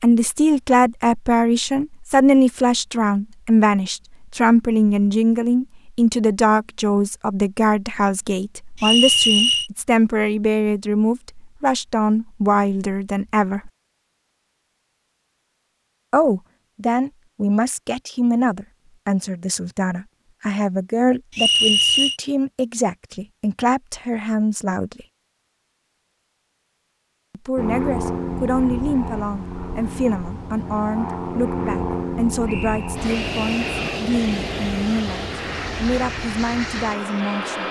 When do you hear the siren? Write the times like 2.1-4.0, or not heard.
not heard.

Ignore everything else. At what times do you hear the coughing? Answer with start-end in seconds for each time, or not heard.
not heard.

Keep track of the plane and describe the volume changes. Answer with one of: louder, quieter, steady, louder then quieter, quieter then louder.
steady.